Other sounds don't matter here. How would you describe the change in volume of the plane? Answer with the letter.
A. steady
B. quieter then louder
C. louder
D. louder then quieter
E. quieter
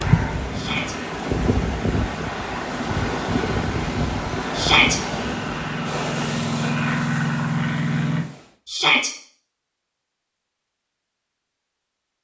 C.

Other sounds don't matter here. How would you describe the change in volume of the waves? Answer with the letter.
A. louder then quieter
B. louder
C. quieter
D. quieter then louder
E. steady
C.